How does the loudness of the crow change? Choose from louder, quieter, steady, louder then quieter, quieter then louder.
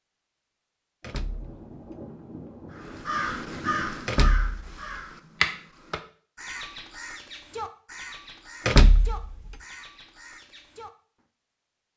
quieter.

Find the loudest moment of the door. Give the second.
9 s.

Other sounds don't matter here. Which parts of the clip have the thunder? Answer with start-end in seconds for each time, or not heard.
1.0-4.1.